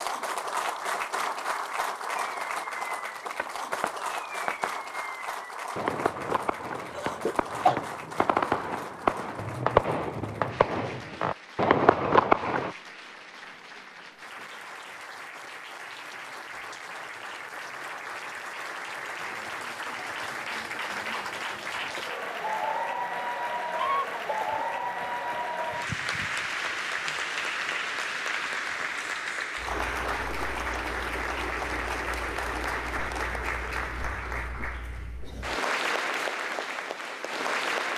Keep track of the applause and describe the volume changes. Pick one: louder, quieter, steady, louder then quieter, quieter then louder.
quieter then louder.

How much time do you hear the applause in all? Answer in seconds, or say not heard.
38 s.